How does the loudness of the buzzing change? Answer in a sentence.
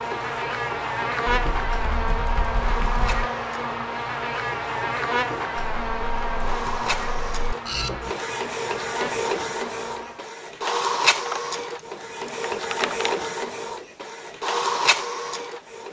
The loudness of the buzzing goes down.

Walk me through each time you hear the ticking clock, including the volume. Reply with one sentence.
You can't hear the ticking clock here.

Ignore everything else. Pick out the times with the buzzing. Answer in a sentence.
The buzzing can be heard from 0.0 to 10.2 s.